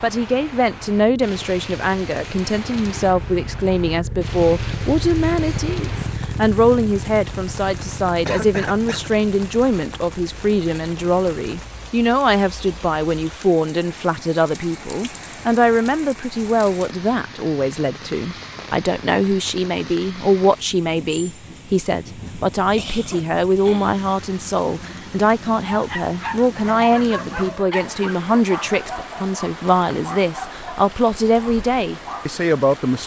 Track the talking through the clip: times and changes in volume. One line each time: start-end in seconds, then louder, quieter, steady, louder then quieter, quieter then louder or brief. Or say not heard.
0.0-33.0 steady.